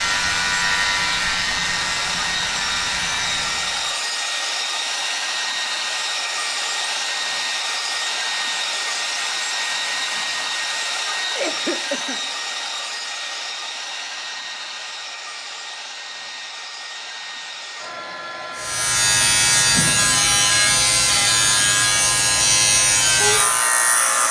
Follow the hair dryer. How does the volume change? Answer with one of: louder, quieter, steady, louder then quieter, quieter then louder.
quieter.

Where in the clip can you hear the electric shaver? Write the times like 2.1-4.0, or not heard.
0.0-4.0, 18.6-24.2.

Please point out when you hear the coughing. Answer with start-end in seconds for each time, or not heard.
11.2-12.2.